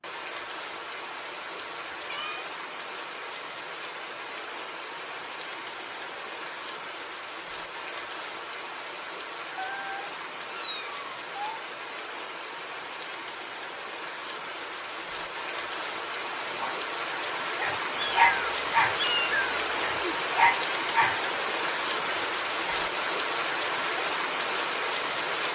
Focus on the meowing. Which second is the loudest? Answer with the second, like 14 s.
19 s.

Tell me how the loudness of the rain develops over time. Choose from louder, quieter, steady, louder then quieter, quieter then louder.
louder.